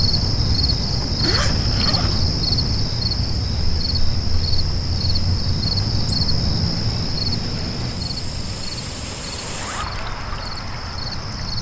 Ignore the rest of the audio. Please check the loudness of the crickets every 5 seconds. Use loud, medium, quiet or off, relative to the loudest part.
loud, loud, medium.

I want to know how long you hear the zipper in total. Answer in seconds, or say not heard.
2 s.